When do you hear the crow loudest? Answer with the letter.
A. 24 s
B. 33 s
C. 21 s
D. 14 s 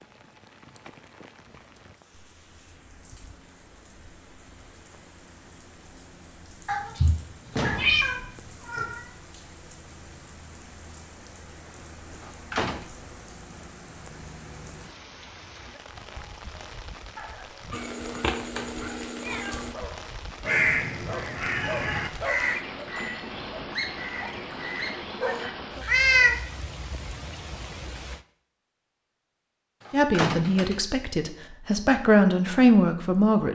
C.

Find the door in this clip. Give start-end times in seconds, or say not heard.
7.5-8.2, 12.2-12.8, 29.9-30.8.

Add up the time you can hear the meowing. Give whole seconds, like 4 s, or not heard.
6 s.